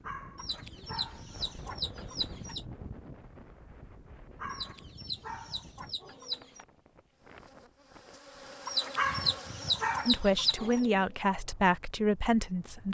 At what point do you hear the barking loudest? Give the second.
9 s.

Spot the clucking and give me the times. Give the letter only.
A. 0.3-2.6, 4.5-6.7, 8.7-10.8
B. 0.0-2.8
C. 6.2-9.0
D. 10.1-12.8
A.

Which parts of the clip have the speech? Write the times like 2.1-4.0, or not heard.
10.1-12.8.